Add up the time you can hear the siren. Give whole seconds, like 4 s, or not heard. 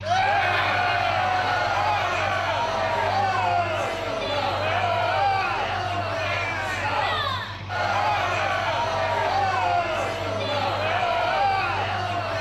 not heard.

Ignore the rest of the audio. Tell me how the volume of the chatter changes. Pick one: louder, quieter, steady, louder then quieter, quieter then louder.
steady.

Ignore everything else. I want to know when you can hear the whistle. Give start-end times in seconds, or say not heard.
not heard.